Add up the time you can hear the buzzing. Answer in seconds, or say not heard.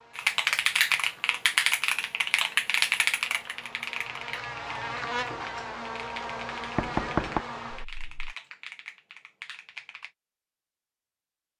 8 s.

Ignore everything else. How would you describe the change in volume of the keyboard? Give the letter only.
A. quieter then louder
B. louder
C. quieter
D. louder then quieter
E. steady
C.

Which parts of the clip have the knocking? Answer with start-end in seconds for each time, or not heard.
6.8-7.5.